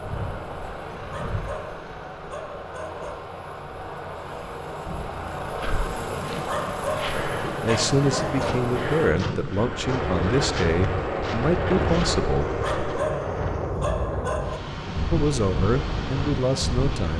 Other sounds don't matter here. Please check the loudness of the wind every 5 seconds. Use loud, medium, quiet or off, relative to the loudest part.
quiet, medium, loud, loud.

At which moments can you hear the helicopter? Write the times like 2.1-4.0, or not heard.
0.0-9.2.